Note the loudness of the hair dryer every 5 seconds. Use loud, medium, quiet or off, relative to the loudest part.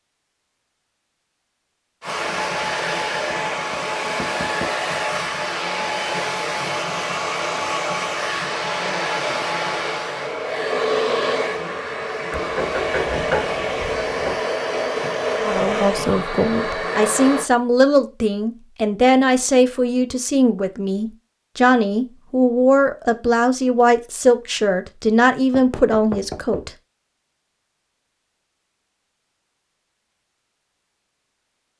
loud, loud, loud, loud, off, off, off.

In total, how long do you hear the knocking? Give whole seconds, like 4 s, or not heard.
5 s.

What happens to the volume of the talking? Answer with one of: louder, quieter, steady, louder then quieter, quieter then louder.
steady.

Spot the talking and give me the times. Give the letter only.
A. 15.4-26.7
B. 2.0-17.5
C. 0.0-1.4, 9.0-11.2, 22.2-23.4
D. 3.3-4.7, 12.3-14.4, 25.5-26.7
A.